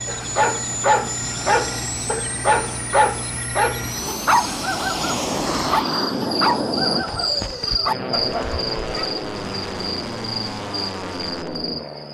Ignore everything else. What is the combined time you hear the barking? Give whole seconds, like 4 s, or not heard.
9 s.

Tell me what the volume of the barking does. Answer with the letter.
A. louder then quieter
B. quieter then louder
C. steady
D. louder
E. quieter
E.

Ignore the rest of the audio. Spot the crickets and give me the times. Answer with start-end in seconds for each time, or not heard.
0.0-12.1.